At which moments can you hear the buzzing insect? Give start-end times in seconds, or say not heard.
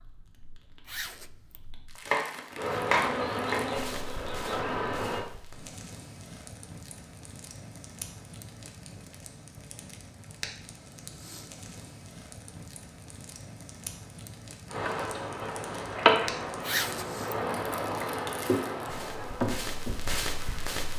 2.5-5.2, 14.7-20.9.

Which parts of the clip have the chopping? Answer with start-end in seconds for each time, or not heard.
2.0-3.6.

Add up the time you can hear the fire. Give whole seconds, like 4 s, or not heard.
21 s.